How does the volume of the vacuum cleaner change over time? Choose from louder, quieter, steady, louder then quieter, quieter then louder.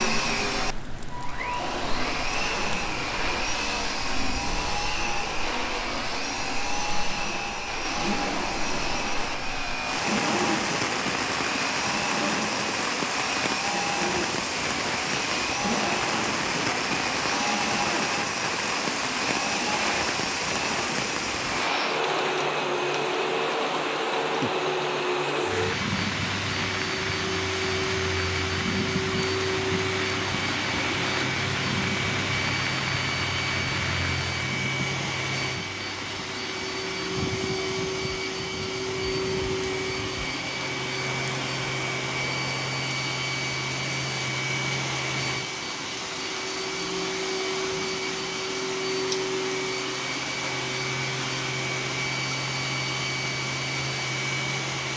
steady.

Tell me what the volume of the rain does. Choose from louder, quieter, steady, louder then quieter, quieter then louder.
louder then quieter.